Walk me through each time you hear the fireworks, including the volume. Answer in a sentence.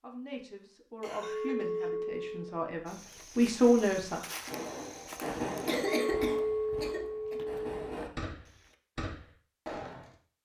You can hear the fireworks from 4.3 to 10.2 s, getting quieter then louder.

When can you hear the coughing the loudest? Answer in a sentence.
The loudest moment of the coughing is at 6 seconds.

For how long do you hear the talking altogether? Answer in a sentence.
The talking can be heard for 4 seconds in total.